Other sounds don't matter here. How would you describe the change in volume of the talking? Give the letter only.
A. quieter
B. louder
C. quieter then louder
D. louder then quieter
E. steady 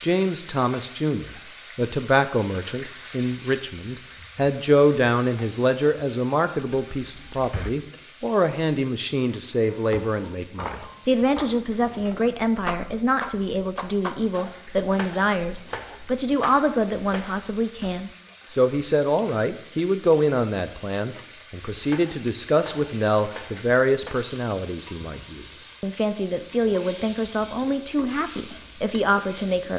E.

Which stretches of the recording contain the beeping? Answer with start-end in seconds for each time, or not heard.
6.5-7.7.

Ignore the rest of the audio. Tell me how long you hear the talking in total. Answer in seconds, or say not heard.
30 s.